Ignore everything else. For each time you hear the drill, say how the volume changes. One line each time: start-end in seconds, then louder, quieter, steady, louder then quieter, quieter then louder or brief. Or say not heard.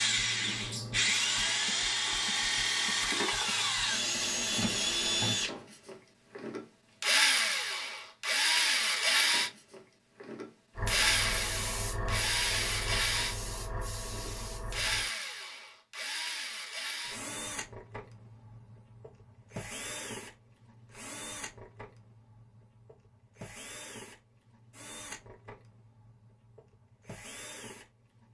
0.0-28.2 quieter.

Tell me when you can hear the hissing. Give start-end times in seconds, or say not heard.
10.8-15.1.